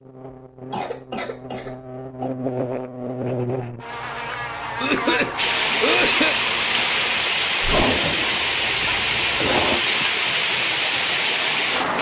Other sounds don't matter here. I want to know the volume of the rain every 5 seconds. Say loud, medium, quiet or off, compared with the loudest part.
off, loud, loud.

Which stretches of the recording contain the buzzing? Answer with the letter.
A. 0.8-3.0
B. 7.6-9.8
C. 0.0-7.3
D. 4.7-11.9
C.